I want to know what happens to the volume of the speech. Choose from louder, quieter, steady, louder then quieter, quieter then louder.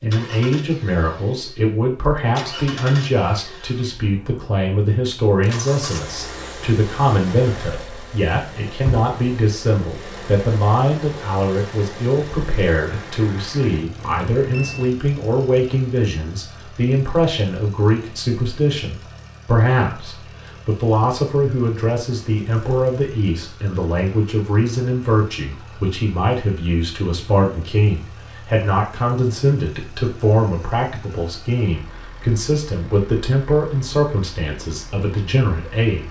steady.